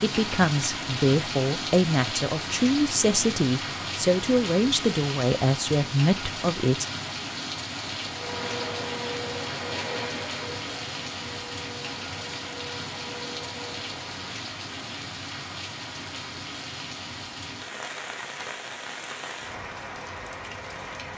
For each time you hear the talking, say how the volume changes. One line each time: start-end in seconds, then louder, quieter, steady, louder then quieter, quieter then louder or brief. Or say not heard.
0.0-6.8 steady.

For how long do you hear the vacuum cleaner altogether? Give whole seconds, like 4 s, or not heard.
6 s.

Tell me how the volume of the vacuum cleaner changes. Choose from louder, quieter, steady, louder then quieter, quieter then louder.
quieter.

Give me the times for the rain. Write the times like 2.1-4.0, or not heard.
0.0-21.1.